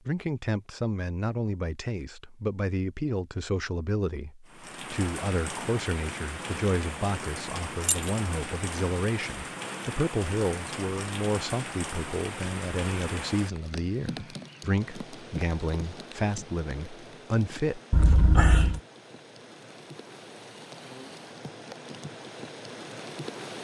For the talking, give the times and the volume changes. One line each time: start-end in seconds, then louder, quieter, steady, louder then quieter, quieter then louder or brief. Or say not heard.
0.1-17.8 steady.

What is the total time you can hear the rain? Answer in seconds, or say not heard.
19 s.